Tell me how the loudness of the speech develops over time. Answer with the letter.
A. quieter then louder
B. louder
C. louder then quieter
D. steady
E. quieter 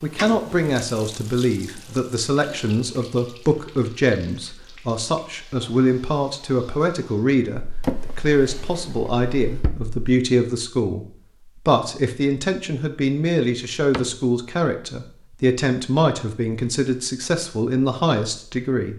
D.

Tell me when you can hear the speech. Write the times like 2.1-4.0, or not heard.
0.0-11.1, 11.7-18.9.